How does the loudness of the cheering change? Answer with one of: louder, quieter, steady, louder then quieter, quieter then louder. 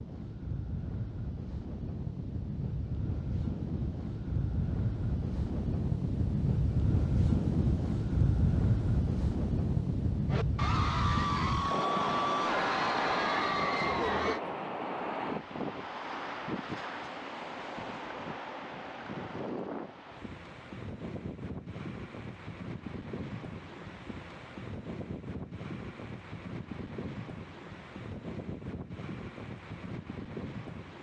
steady.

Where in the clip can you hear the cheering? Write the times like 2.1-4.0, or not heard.
10.2-14.4.